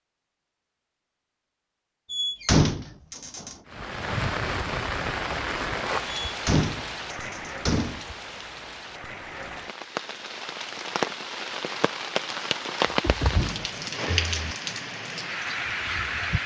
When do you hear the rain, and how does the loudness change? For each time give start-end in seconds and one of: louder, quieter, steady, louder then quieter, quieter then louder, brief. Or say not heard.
3.6-16.4 quieter then louder.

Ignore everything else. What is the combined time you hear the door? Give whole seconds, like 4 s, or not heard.
5 s.